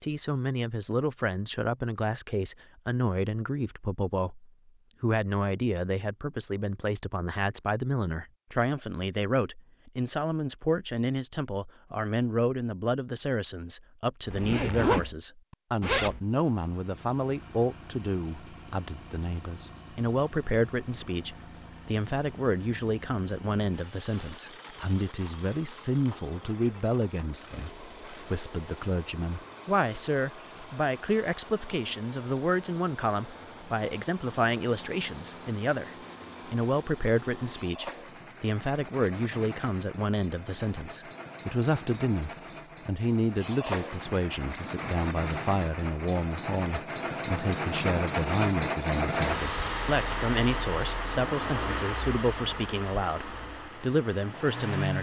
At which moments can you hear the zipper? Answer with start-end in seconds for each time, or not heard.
14.2-16.2.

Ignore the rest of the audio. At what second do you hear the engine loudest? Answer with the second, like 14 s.
49 s.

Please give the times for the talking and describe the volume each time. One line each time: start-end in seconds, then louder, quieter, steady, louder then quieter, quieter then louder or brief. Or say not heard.
0.0-54.9 steady.